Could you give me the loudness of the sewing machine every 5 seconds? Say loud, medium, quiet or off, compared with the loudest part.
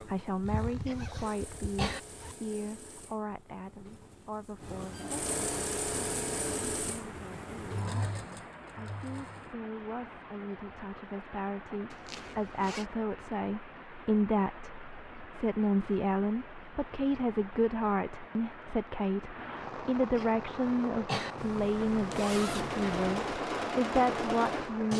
quiet, loud, off, off, loud.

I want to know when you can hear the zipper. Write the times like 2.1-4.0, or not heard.
0.4-2.4, 11.9-12.8, 21.4-23.4.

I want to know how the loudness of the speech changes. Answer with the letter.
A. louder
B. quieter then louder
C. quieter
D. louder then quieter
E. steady
B.